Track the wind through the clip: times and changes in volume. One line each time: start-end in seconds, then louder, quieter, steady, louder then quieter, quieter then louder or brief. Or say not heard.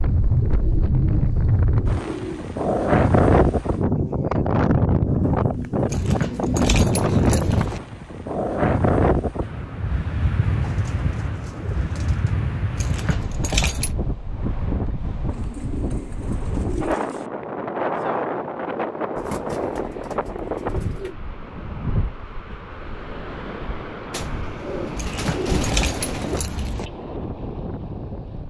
0.0-28.4 quieter.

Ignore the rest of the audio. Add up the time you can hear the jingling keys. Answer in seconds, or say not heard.
5 s.